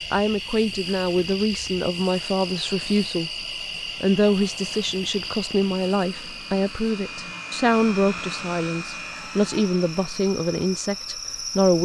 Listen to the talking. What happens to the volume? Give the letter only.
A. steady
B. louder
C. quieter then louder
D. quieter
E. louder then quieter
A.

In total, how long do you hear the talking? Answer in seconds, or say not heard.
11 s.